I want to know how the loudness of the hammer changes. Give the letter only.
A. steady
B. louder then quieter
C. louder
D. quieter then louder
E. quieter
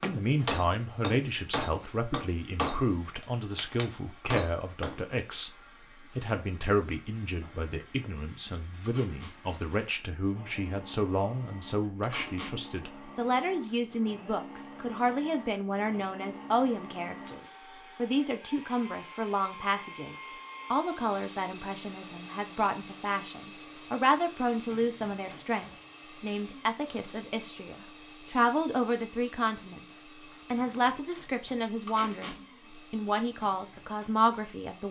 D.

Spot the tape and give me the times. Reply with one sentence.
The tape can be heard from 8.8 to 9.3 s, from 12.0 to 12.6 s and from 31.9 to 32.4 s.